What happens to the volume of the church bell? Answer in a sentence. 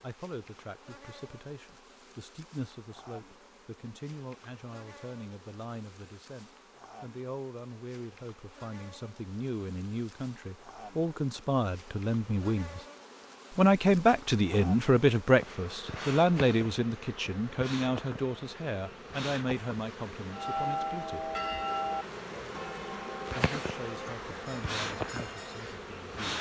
The loudness of the church bell goes down.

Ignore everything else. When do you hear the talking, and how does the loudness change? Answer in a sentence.
The talking can be heard from 0.0 to 12.8 s, getting louder; from 13.5 to 21.3 s, getting quieter; and briefly from 23.4 to 26.3 s.